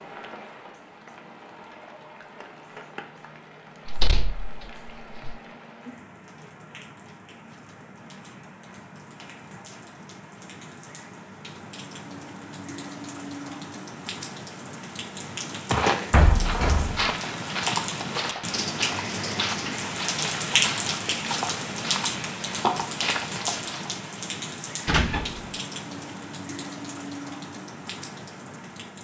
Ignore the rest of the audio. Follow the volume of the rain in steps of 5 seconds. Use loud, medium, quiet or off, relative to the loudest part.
quiet, quiet, medium, loud, loud, medium.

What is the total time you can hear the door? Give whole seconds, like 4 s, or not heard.
3 s.